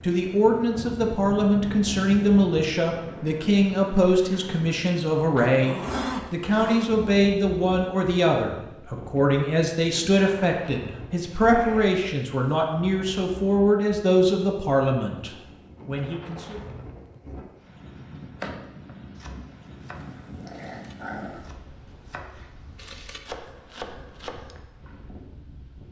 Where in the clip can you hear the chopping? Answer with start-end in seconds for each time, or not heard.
18.4-24.9.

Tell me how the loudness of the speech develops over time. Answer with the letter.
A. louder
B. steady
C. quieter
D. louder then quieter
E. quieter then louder
B.